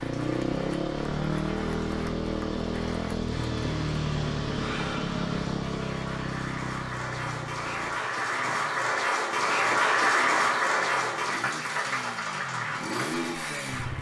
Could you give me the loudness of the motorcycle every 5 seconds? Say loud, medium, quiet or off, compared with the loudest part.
loud, medium, medium.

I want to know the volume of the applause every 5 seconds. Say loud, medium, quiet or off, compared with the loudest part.
quiet, loud, loud.